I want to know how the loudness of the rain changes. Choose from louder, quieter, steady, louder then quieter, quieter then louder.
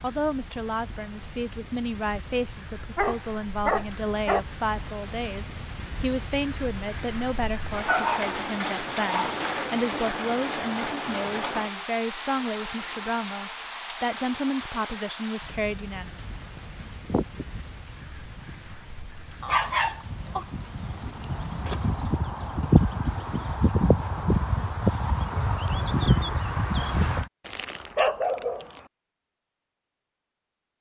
louder then quieter.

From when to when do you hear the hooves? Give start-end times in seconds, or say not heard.
16.6-27.2.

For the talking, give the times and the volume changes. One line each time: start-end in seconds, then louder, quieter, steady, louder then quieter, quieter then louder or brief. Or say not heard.
0.0-16.1 steady.